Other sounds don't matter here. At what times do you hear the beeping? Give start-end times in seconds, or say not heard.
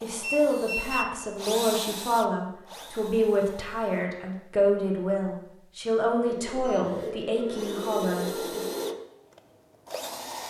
0.2-1.1, 6.2-8.9.